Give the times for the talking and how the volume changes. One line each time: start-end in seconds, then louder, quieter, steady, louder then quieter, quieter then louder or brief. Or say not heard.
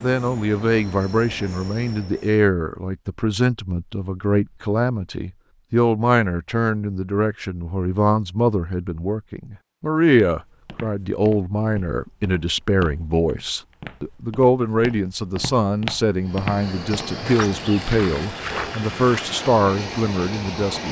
0.0-20.8 steady.